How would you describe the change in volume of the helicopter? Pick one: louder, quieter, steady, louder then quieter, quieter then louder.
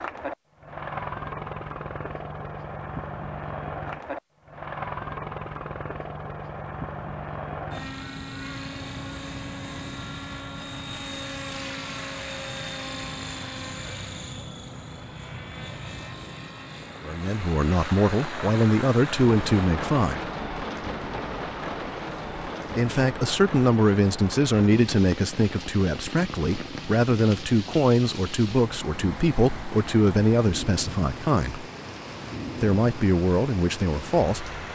quieter.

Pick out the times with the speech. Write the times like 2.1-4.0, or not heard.
17.0-20.3, 22.8-31.6, 32.6-34.5.